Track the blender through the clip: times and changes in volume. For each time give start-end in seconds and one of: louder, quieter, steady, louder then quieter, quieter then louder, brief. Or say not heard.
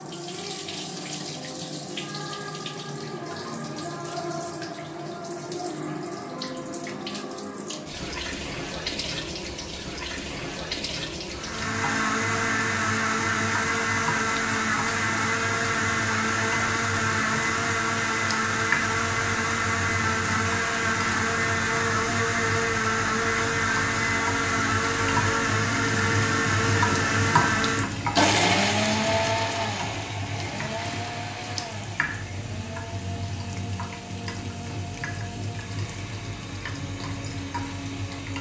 11.3-38.3 quieter.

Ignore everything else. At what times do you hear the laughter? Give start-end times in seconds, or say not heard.
not heard.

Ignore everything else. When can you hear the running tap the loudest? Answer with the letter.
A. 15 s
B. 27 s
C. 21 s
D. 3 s
B.